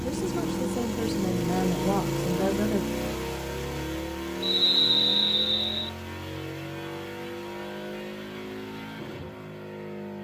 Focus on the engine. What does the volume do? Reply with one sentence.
The volume of the engine goes down.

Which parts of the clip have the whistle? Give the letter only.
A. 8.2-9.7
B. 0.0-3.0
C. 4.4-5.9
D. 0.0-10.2
C.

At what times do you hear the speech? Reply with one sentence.
You can hear the speech from 0.0 to 3.0 s.